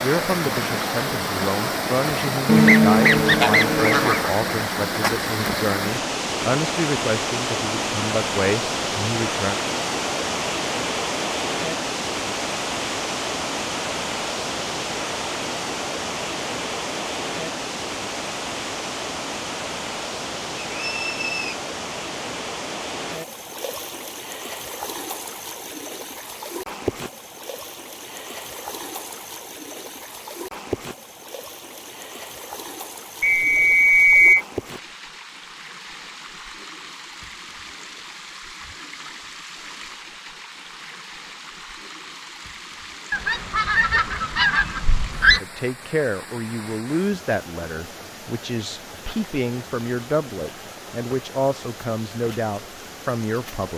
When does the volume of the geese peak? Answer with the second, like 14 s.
3 s.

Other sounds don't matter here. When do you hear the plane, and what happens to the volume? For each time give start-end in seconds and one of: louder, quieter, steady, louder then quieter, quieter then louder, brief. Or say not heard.
not heard.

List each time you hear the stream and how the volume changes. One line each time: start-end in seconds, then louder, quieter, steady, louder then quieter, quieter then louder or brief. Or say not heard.
0.0-53.7 quieter.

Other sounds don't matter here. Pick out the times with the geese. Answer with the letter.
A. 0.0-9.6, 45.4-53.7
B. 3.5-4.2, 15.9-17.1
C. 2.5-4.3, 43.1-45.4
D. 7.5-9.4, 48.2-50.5
C.